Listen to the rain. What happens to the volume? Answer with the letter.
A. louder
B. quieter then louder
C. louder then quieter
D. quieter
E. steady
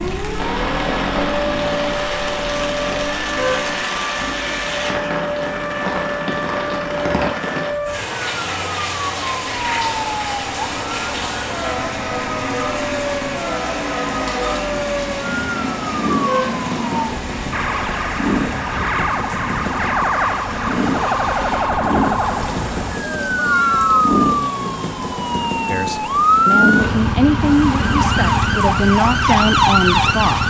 D.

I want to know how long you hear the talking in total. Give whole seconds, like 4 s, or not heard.
5 s.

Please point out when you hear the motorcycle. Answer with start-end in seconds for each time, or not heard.
0.0-30.4.